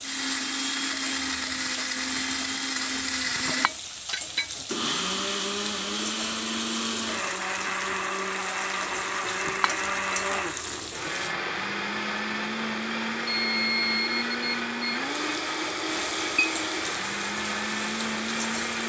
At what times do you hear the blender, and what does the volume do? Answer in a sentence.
The blender can be heard from 0.0 to 18.8 s, at a steady volume.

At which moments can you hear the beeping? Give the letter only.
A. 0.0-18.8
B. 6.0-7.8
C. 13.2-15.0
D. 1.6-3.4
C.